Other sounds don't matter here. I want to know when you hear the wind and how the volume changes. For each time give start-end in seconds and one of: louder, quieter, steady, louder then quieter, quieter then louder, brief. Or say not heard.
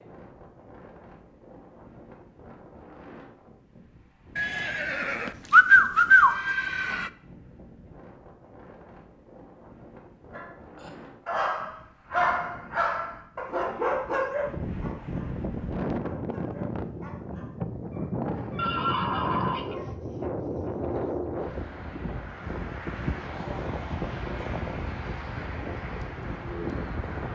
0.0-27.3 louder.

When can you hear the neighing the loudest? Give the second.
6 s.